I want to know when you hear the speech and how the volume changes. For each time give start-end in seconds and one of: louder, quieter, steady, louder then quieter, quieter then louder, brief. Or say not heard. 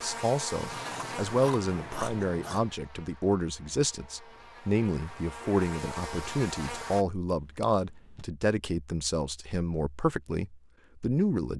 0.0-11.5 steady.